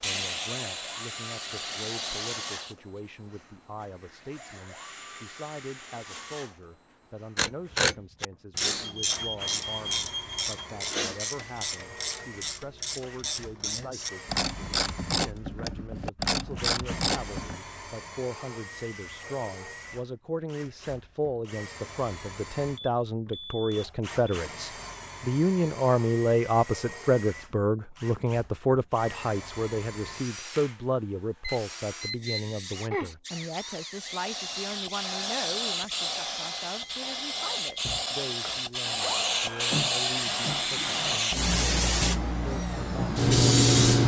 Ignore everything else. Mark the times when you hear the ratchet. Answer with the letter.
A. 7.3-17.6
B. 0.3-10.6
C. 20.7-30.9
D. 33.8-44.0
A.